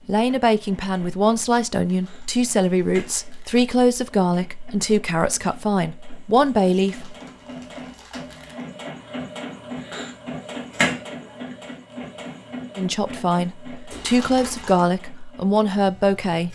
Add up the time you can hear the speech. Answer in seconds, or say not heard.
11 s.